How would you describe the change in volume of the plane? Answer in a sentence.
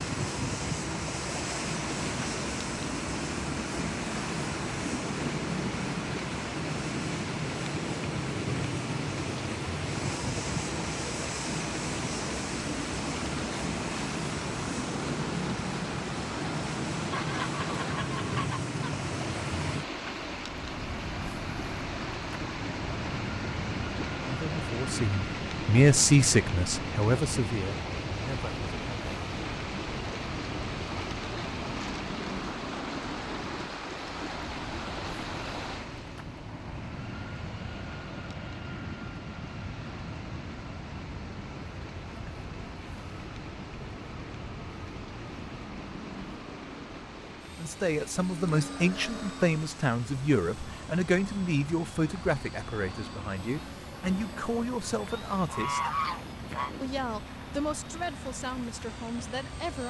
The loudness of the plane goes down.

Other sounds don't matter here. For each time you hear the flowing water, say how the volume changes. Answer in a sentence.
The flowing water can be heard from 0.0 to 59.8 s, getting quieter.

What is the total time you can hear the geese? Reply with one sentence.
You can hear the geese for 4 seconds altogether.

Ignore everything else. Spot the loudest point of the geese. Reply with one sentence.
The volume of the geese peaks at 56 seconds.